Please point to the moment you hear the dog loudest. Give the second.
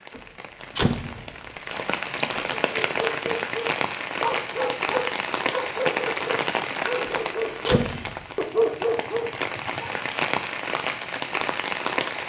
9 s.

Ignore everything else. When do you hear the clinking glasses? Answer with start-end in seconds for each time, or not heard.
not heard.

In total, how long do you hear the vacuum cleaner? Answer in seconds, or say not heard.
not heard.